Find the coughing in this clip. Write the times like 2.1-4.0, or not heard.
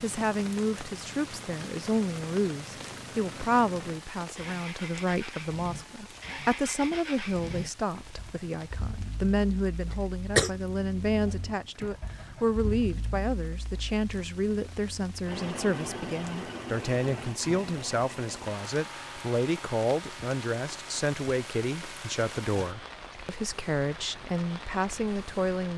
9.9-10.5.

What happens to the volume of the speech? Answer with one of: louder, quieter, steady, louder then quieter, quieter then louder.
steady.